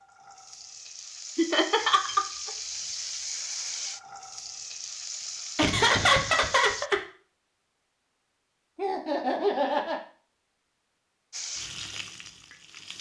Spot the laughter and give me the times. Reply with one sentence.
You can hear the laughter from 1.4 to 2.2 s, from 5.5 to 7.0 s and from 8.8 to 10.0 s.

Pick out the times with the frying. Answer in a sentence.
The frying can be heard from 0.0 to 6.9 s and from 11.3 to 12.9 s.